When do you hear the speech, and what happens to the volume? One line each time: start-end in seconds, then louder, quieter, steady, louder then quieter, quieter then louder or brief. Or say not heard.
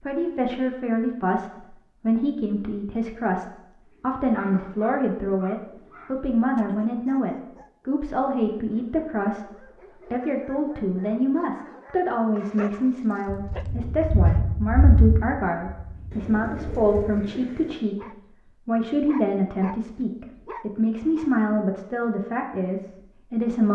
0.0-23.6 steady.